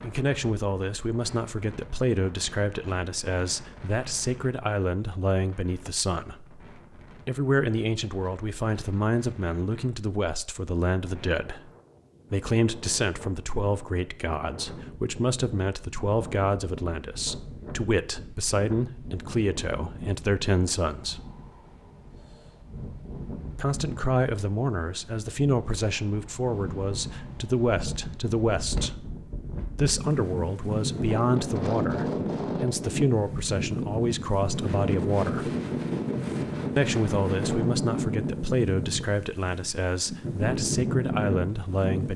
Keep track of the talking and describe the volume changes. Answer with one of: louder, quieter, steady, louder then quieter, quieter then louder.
steady.